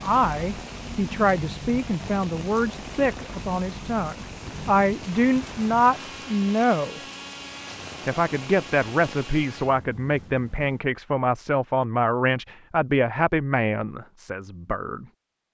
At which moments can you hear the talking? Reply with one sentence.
The talking can be heard from 0.0 to 7.0 s and from 8.1 to 15.1 s.